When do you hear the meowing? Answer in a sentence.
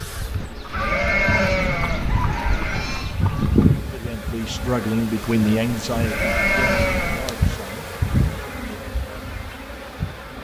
The meowing can't be heard in this clip.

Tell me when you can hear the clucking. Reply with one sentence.
You can hear the clucking from 0.0 to 3.6 s.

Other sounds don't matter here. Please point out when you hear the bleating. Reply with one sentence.
The bleating can be heard from 0.4 to 3.1 s and from 5.9 to 7.3 s.